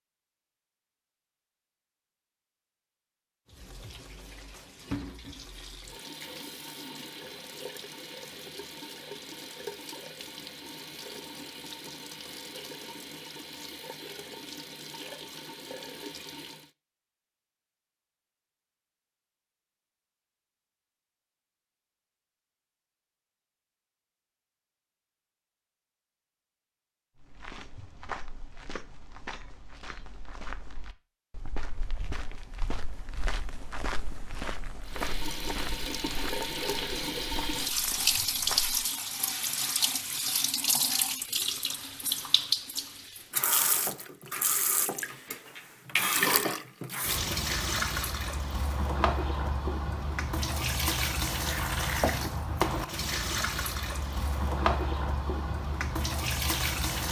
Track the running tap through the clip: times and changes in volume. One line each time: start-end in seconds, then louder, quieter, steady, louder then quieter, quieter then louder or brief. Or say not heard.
3.5-16.7 steady
34.8-57.0 steady.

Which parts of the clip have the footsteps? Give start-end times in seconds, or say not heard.
27.1-38.9.